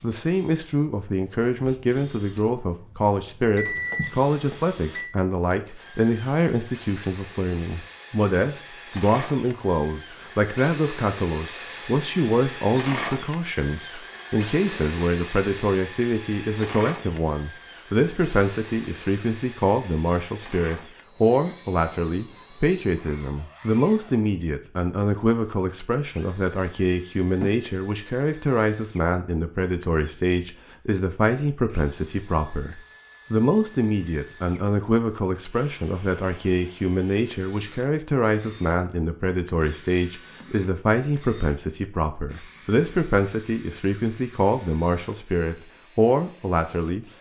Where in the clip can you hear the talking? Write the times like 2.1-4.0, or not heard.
0.0-47.0.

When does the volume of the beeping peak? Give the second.
4 s.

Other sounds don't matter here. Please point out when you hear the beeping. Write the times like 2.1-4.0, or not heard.
3.5-5.2.